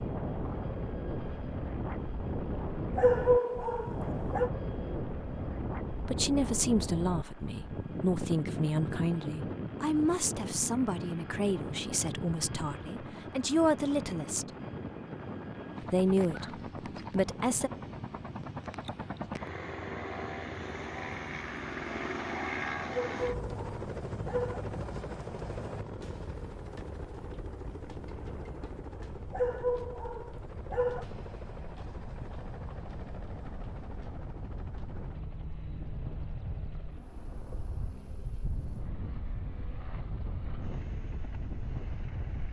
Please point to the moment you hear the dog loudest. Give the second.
3 s.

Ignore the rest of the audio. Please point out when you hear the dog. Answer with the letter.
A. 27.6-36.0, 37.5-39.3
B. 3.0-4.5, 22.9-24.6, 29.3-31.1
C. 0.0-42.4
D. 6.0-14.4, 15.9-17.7
B.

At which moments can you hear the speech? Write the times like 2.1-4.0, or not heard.
6.0-14.4, 15.9-17.7.